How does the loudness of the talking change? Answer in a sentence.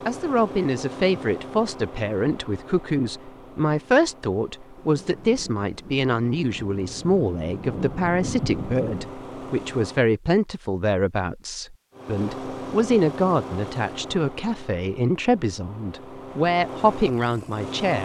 The loudness of the talking stays about the same.